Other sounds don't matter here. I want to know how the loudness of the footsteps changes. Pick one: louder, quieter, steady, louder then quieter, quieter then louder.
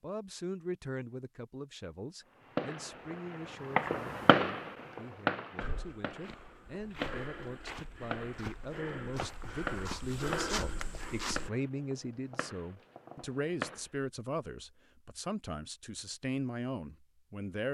louder.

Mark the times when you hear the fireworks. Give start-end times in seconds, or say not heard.
2.4-13.8.